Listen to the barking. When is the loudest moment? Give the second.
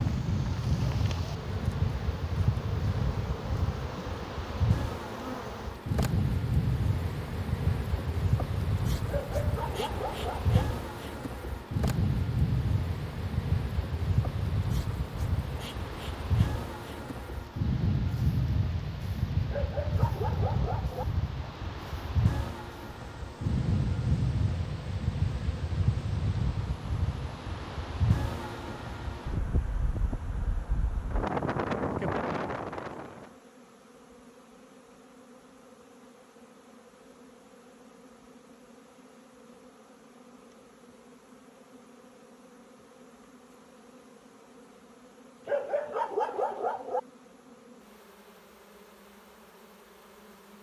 46 s.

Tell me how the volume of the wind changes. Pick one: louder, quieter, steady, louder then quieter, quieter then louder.
steady.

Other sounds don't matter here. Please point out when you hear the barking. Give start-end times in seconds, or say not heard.
9.1-10.6, 19.5-21.1, 45.5-47.0.